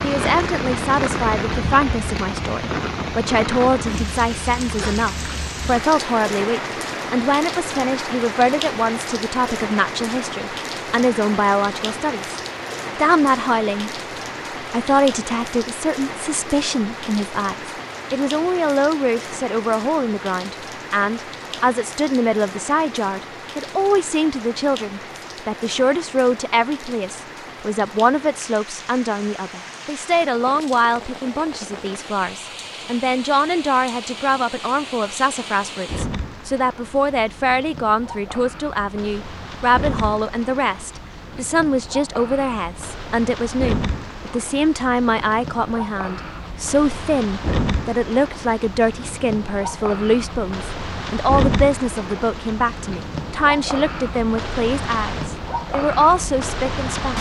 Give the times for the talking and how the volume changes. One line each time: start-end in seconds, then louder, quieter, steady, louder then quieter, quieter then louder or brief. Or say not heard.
0.0-13.9 steady
14.6-57.1 steady.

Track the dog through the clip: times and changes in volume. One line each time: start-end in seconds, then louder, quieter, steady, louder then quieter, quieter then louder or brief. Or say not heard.
not heard.